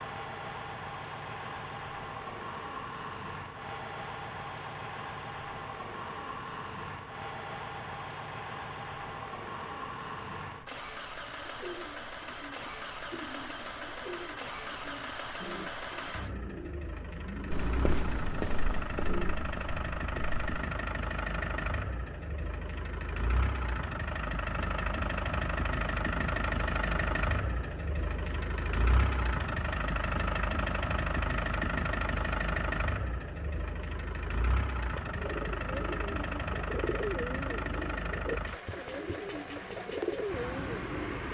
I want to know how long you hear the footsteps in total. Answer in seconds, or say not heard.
3 s.